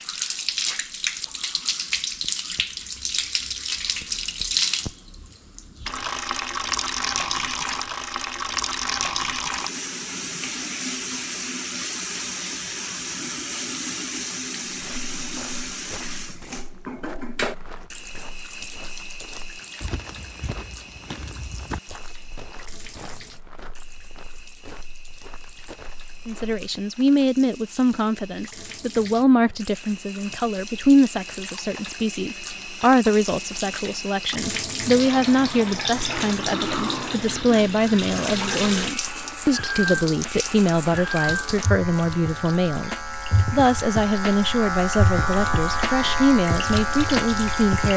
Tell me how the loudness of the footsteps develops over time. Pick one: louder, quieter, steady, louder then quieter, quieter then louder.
louder then quieter.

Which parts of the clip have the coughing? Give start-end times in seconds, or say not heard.
not heard.